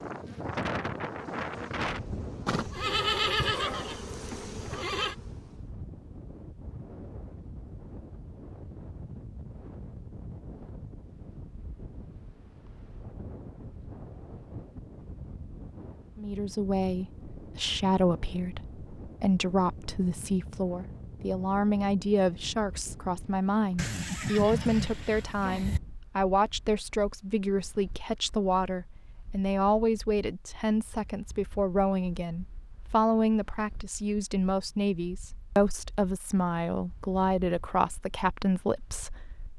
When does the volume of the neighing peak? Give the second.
3 s.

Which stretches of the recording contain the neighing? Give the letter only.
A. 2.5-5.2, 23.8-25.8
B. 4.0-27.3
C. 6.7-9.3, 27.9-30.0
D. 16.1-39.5
A.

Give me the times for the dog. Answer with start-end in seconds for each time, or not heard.
not heard.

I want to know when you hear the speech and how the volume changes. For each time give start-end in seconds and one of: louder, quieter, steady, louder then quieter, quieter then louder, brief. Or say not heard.
16.1-39.5 steady.